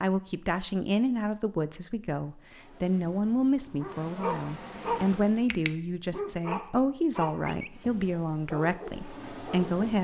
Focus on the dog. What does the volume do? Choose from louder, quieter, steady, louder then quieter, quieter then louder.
quieter.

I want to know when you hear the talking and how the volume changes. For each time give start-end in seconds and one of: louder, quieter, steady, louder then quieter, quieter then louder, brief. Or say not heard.
0.0-9.9 steady.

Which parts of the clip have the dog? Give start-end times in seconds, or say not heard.
3.8-9.8.